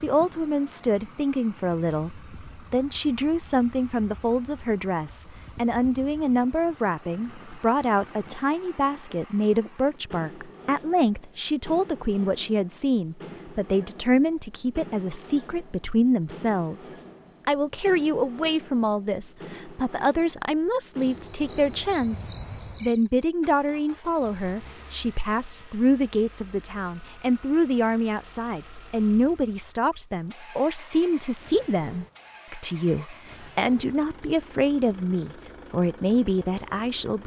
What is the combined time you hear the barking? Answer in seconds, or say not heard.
not heard.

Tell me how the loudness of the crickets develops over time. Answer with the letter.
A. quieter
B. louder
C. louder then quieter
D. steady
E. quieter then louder
D.